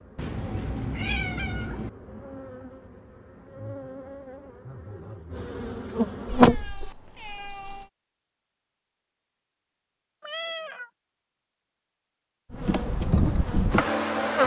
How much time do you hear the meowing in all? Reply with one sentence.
The meowing can be heard for 4 seconds in total.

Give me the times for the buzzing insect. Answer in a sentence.
You can hear the buzzing insect from 0.0 to 6.6 s and from 12.5 to 14.4 s.